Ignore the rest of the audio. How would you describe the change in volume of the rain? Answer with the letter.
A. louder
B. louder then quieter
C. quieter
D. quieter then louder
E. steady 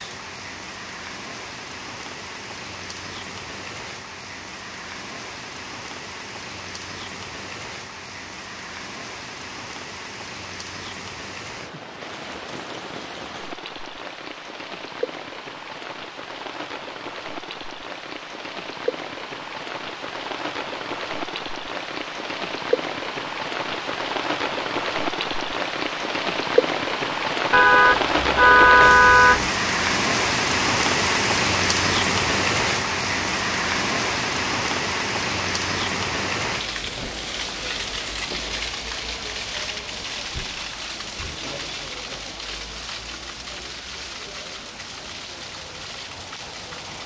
B.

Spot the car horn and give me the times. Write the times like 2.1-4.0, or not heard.
27.5-29.5.